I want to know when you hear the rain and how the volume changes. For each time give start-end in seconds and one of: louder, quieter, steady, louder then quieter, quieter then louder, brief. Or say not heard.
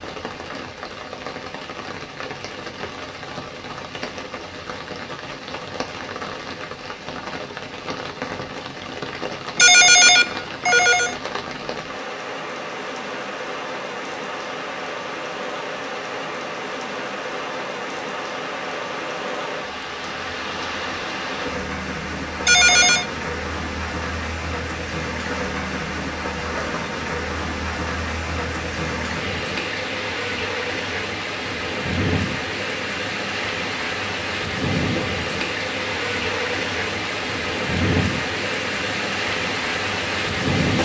0.0-40.8 louder.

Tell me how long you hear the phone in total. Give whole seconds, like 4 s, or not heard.
2 s.